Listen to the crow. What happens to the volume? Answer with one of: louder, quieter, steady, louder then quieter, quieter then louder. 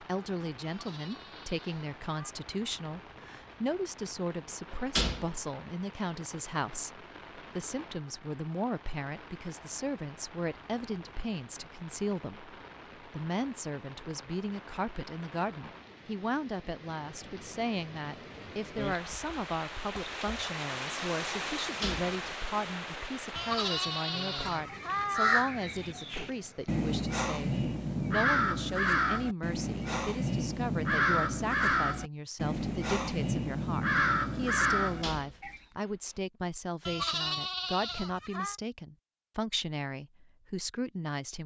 steady.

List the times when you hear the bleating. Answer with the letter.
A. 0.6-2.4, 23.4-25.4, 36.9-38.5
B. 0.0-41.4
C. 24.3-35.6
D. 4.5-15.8
A.